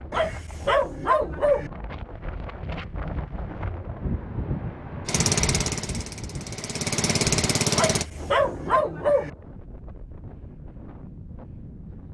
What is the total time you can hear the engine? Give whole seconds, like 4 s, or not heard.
3 s.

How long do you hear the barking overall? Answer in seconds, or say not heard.
3 s.